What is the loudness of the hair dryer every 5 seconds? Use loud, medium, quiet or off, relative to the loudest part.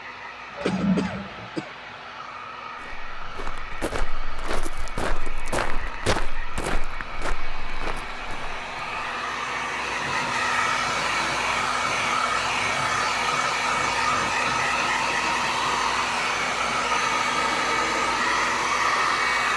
quiet, medium, loud, loud.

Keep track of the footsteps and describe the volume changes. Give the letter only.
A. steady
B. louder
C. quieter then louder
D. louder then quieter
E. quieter
D.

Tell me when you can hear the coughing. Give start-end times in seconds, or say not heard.
0.7-1.7.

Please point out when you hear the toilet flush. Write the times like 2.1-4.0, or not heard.
0.5-1.5.